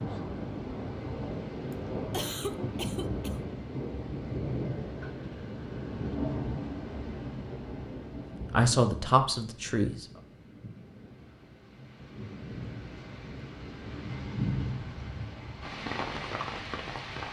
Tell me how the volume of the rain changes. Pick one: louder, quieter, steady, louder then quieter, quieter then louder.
quieter then louder.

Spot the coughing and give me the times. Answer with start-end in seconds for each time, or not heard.
1.7-3.4.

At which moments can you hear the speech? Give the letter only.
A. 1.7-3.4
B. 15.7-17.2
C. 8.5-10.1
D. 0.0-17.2
C.